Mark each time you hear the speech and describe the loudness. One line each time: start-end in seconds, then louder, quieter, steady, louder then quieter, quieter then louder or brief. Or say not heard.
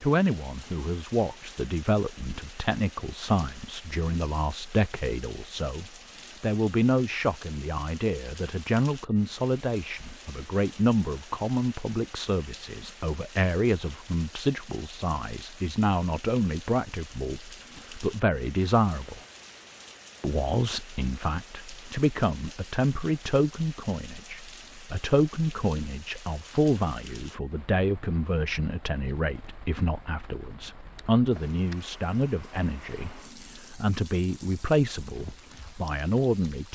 0.0-19.2 steady
20.2-36.7 steady.